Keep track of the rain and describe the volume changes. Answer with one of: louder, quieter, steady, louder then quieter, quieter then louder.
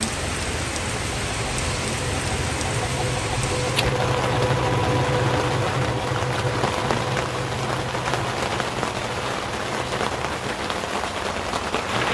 steady.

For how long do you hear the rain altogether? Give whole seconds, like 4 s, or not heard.
12 s.